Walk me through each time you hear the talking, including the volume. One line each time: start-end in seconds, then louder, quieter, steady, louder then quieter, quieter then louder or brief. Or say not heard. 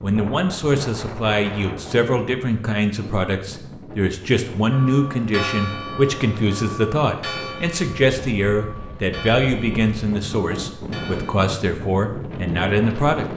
0.0-13.2 steady.